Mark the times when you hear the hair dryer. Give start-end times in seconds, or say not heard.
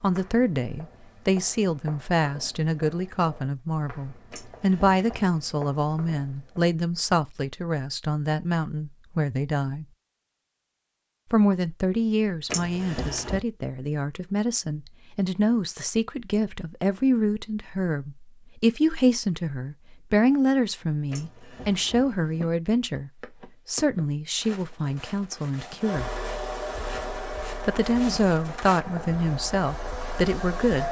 25.8-30.8.